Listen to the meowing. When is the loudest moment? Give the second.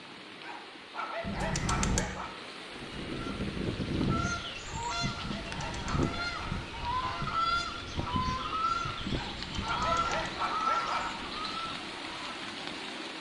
2 s.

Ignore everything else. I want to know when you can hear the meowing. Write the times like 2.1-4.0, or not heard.
1.2-2.1, 5.2-6.2, 9.2-10.3.